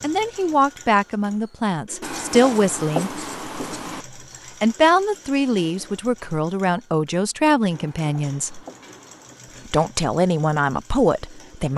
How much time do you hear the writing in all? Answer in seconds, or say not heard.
4 s.